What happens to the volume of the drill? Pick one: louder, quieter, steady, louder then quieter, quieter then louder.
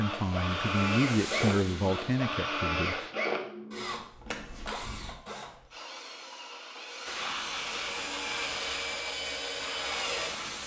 quieter then louder.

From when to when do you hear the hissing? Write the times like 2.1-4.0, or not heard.
0.0-3.1, 7.0-10.6.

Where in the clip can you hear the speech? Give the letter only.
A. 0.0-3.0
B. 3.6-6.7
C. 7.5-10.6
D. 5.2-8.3
A.